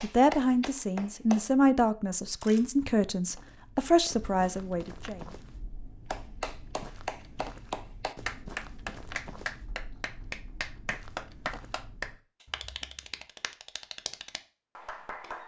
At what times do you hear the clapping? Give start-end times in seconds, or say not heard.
0.0-1.5, 6.1-15.4.